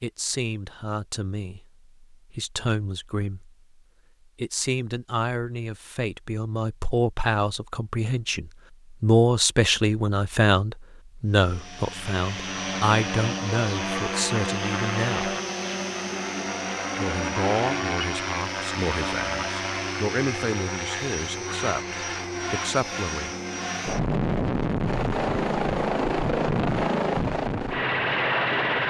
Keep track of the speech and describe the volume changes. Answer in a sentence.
The loudness of the speech goes up, then down.